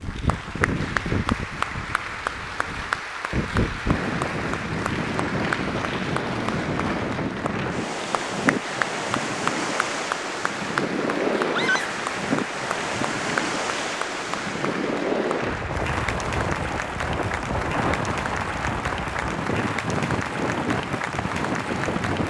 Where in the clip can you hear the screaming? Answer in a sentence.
You can hear the screaming from 11.5 to 11.9 s.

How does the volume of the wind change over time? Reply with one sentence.
The volume of the wind stays about the same.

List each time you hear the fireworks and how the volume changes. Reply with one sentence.
The fireworks can't be heard in this clip.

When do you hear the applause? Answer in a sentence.
The applause can be heard from 0.0 to 22.2 s.